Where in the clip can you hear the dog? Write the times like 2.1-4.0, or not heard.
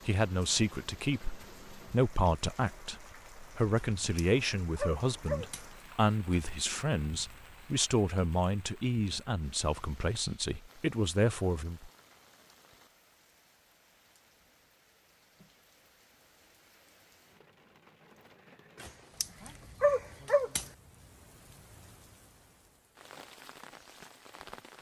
3.8-5.7, 18.8-20.6.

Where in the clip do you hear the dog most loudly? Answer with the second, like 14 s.
20 s.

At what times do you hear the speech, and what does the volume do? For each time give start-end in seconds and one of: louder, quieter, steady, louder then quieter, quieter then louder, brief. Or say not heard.
0.1-11.9 steady.